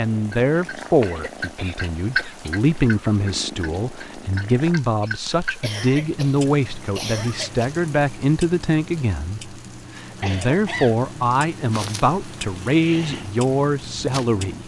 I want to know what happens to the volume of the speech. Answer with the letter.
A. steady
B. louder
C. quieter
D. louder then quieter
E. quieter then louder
A.